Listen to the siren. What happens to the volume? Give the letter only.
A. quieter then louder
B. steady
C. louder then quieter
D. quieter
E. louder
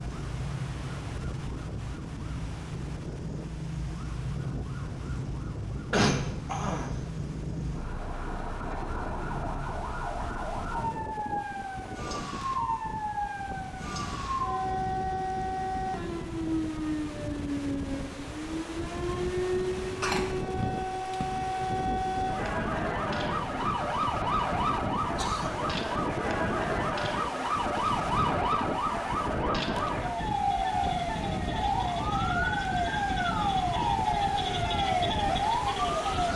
E.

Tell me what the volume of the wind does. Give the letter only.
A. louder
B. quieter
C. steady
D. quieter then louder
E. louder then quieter
A.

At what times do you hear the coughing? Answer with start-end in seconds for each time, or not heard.
5.9-7.0, 20.0-21.3, 25.1-25.6.